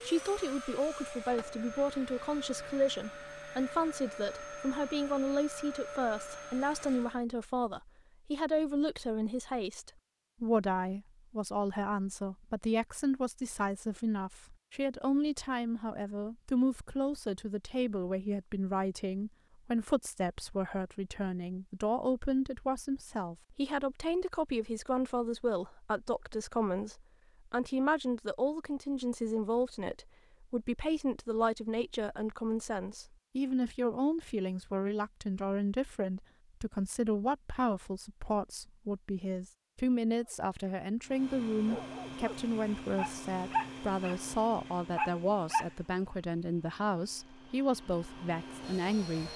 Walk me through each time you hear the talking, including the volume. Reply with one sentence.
The talking can be heard from 0.0 to 49.3 s, at a steady volume.